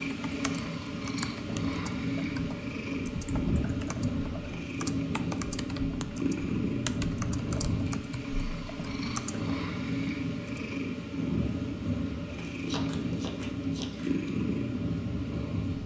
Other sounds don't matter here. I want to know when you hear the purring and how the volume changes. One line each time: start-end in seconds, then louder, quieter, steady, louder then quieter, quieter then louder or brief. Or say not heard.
0.0-15.8 steady.